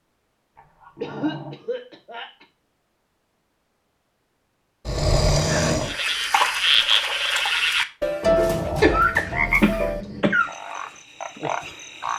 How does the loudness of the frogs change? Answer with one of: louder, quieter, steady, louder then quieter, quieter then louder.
quieter.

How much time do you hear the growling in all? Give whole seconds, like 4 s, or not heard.
4 s.